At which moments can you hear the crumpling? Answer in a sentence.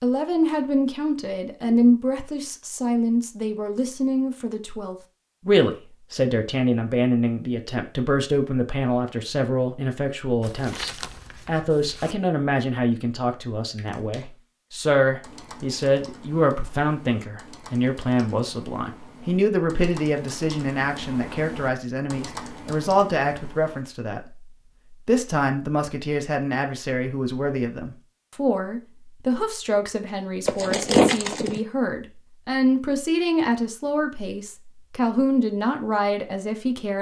The crumpling can be heard from 10.4 to 12.2 s and from 30.4 to 31.6 s.